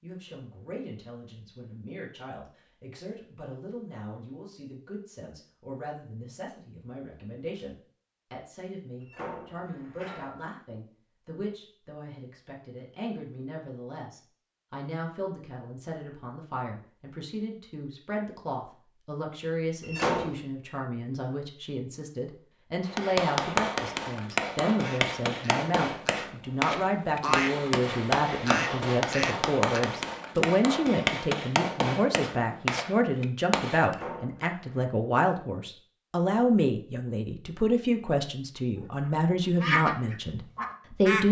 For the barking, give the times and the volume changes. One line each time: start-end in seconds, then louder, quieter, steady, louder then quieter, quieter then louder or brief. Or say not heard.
not heard.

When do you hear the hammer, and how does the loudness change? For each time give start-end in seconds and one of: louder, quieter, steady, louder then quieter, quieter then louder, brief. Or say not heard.
22.9-34.0 steady.